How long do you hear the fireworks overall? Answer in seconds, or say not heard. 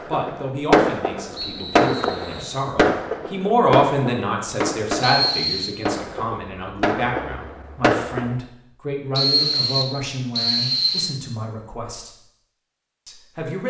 8 s.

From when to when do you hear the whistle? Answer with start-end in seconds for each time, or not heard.
1.4-2.6, 5.0-5.7, 9.2-11.2.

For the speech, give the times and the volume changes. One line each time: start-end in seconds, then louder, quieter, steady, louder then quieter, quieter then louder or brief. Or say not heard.
0.1-12.1 louder then quieter
13.1-13.6 brief.